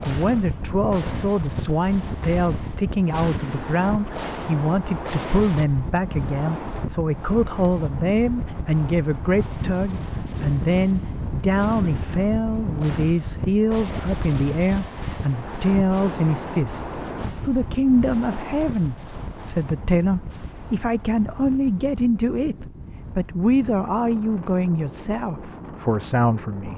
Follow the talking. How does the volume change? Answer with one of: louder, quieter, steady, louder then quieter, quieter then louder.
steady.